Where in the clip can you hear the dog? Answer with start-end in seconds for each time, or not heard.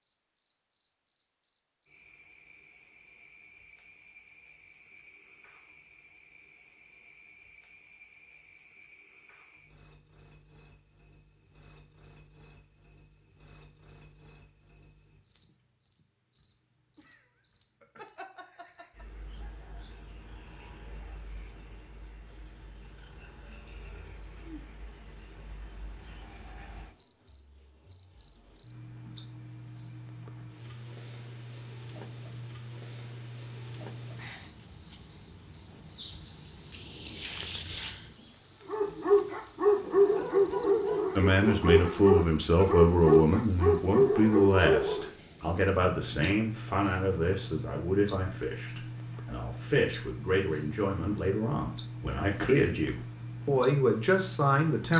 38.6-45.1.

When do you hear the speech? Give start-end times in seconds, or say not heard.
41.1-54.9.